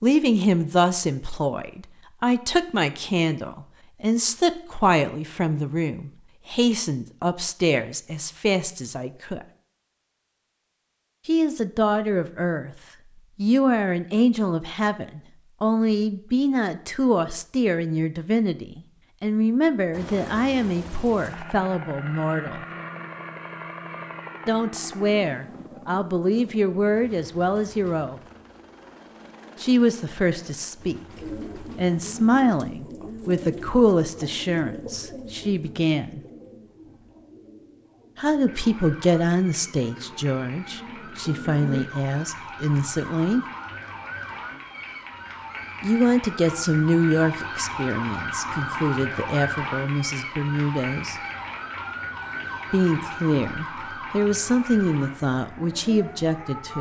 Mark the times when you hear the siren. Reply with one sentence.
You can hear the siren from 38.5 to 56.7 s.